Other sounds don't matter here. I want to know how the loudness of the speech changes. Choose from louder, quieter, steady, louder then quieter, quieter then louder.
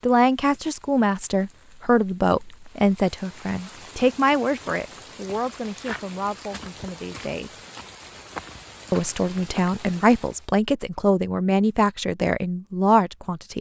quieter then louder.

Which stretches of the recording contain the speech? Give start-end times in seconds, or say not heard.
0.0-7.5, 8.9-13.5.